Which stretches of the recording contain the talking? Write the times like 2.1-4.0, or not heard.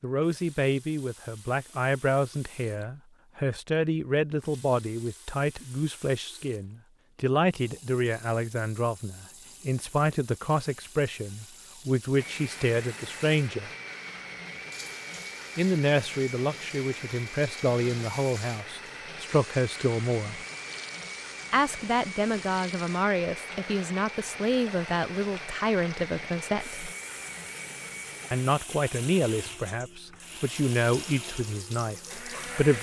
0.0-13.7, 15.6-20.4, 21.5-26.9, 28.3-32.7.